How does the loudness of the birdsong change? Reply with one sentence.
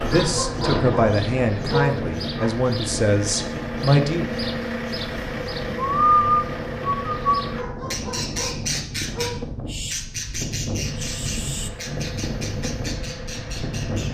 The loudness of the birdsong goes up, then down.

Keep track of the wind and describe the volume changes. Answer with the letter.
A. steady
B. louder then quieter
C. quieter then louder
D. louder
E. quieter
A.